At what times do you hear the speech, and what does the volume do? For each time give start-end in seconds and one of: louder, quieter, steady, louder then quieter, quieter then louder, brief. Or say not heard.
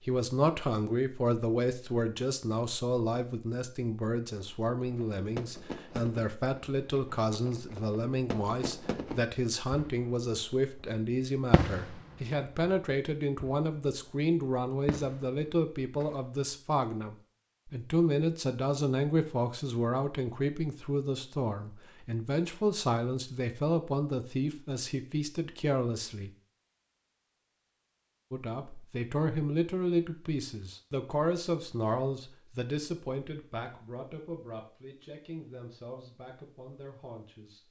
0.1-26.3 steady
28.3-37.6 quieter.